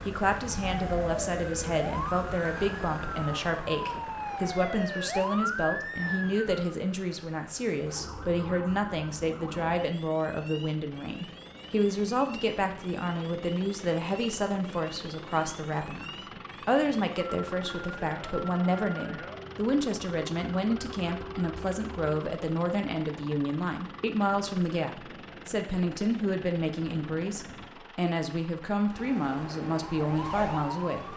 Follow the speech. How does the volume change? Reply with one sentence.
The loudness of the speech stays about the same.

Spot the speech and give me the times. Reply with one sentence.
The speech can be heard from 0.0 to 31.1 s.